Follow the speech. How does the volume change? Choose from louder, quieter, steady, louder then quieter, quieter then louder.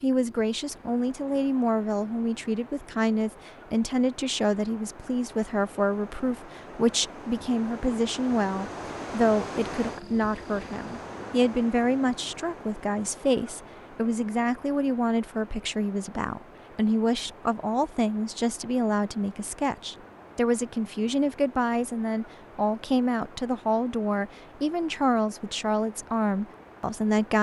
steady.